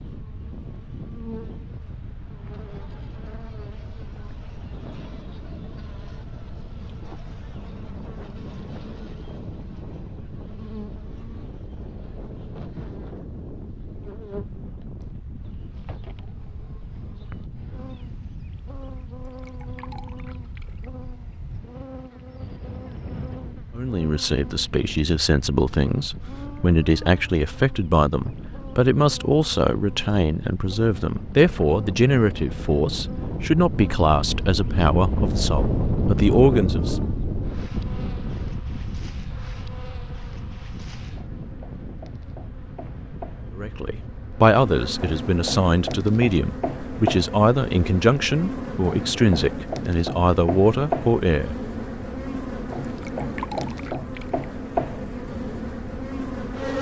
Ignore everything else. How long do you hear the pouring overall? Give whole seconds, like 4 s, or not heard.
3 s.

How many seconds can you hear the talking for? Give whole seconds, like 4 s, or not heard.
21 s.